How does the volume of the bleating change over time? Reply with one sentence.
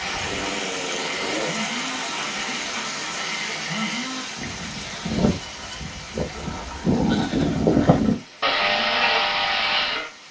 The loudness of the bleating goes up.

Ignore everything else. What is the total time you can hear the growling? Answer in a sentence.
The growling can be heard for 3 seconds in total.